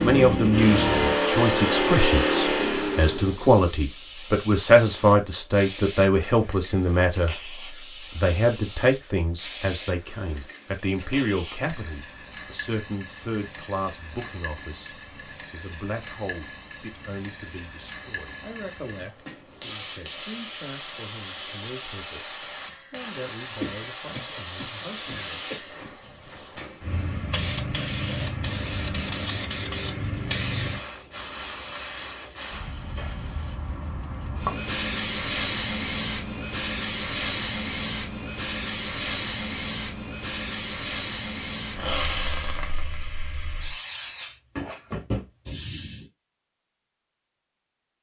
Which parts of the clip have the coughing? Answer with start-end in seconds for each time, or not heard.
23.6-25.6.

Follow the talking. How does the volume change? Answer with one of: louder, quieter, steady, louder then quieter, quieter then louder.
quieter.